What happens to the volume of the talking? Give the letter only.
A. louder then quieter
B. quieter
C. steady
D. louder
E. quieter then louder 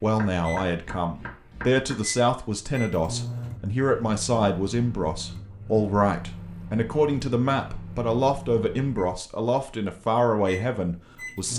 C.